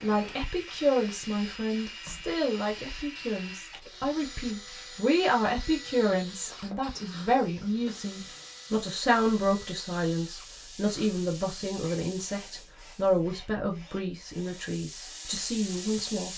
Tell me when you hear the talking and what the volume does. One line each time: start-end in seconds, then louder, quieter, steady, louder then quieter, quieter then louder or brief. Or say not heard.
0.0-16.3 steady.